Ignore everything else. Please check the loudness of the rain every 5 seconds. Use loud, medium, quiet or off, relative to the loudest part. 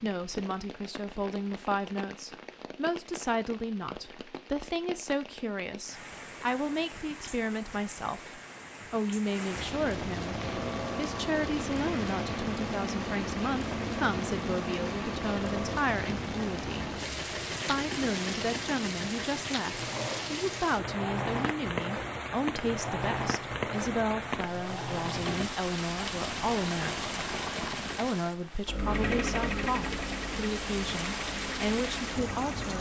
medium, medium, loud, loud, loud, loud, loud.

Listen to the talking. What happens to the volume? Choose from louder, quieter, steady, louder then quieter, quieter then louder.
steady.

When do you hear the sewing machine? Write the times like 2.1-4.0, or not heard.
10.2-32.7.